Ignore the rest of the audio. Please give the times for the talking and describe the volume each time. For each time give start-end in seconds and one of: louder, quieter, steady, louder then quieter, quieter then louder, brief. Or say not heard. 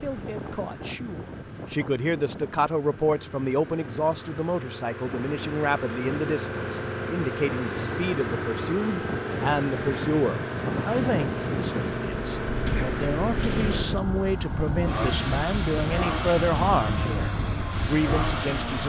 0.0-18.8 steady.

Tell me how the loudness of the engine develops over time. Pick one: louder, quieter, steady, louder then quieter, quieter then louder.
louder.